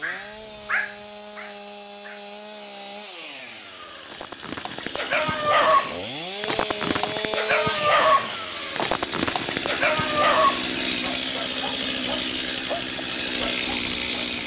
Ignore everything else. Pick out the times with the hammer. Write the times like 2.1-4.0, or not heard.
not heard.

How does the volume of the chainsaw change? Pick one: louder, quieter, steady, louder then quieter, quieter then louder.
louder.